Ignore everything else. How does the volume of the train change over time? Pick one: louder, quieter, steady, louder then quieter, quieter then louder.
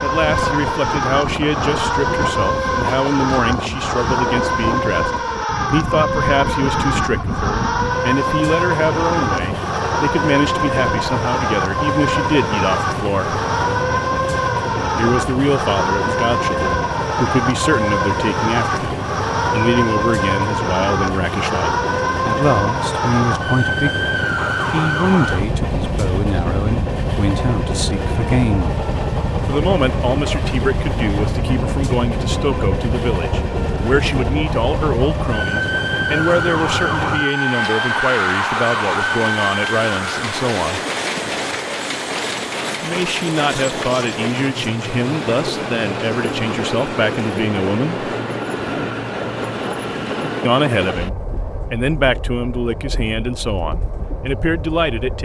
steady.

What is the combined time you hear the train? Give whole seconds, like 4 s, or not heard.
55 s.